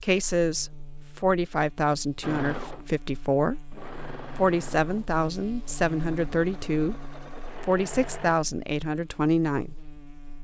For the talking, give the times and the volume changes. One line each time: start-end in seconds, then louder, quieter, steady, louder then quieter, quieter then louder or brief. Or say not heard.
0.0-7.0 steady
7.6-9.8 brief.